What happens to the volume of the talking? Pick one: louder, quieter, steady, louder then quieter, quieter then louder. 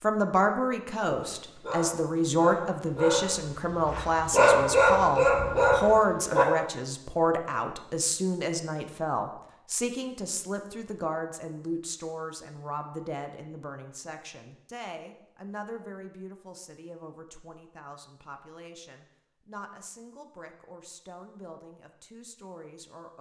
quieter.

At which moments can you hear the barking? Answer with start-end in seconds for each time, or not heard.
1.1-6.5.